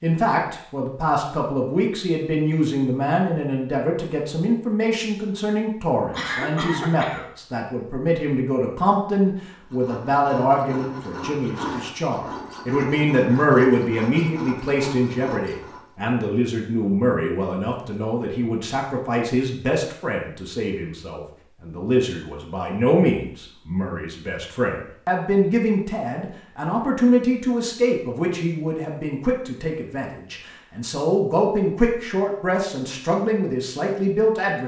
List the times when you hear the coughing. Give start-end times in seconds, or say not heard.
6.1-7.2.